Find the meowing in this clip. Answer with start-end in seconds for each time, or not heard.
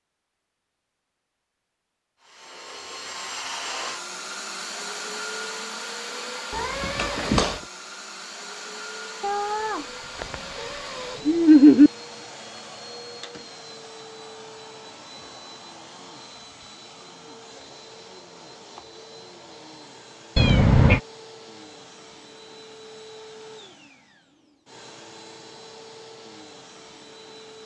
6.5-7.5, 9.2-11.9, 20.4-21.0.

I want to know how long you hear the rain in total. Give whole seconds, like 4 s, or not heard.
not heard.